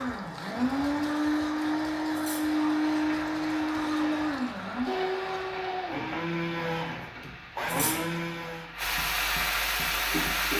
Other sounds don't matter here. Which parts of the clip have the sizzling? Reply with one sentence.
The sizzling can be heard from 2.5 to 10.5 s.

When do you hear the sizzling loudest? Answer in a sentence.
The loudest moment of the sizzling is at 10 seconds.